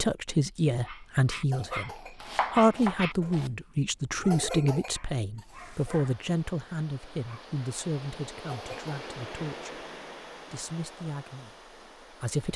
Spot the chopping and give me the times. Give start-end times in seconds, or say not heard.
2.2-3.5.